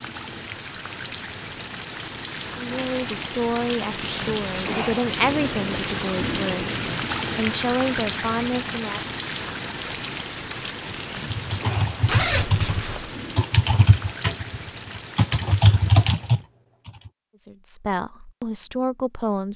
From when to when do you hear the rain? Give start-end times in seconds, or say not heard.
0.0-16.4.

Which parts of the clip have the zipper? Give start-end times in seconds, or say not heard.
2.7-3.2, 12.1-13.2.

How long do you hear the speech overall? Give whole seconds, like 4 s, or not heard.
9 s.